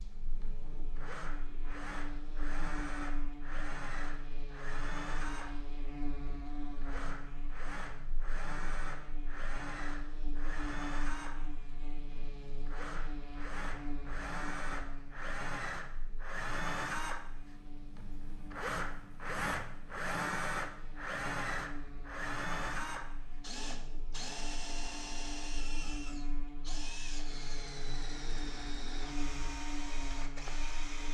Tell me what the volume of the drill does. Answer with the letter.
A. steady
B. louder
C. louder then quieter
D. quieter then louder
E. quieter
C.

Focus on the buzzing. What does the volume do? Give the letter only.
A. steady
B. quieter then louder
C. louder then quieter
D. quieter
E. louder
B.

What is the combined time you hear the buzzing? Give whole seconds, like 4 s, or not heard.
31 s.